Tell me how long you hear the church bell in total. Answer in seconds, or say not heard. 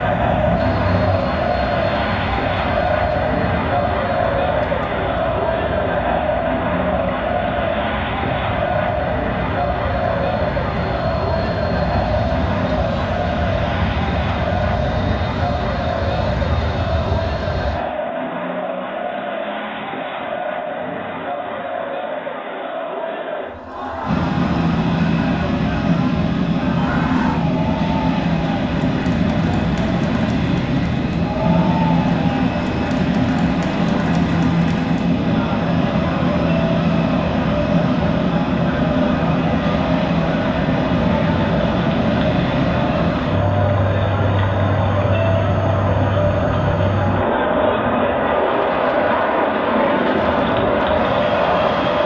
not heard.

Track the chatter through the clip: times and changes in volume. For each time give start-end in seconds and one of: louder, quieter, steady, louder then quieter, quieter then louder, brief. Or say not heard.
0.0-52.0 quieter then louder.